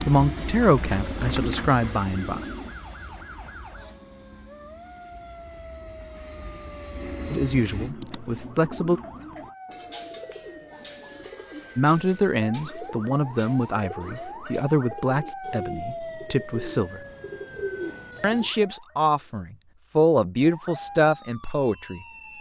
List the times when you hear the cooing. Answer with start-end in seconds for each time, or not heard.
0.0-2.8, 7.0-18.5.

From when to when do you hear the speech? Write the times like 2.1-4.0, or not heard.
0.1-2.4, 7.3-9.0, 11.8-17.0, 18.2-22.3.